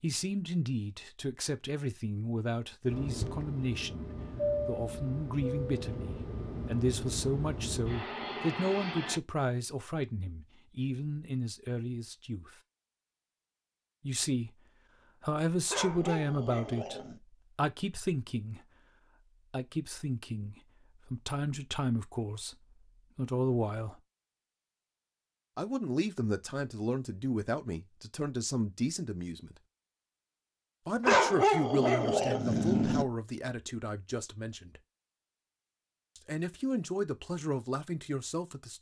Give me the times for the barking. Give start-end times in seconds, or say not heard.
15.7-17.2, 31.0-33.0.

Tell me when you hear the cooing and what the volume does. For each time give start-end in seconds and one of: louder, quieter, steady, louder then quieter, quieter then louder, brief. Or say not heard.
not heard.